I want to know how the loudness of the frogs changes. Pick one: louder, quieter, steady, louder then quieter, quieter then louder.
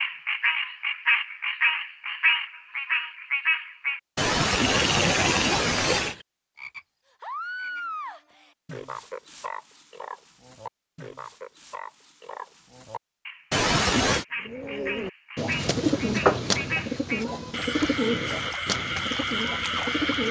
quieter then louder.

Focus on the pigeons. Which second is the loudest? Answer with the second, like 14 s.
16 s.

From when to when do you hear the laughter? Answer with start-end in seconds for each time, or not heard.
4.2-6.2, 13.5-14.2.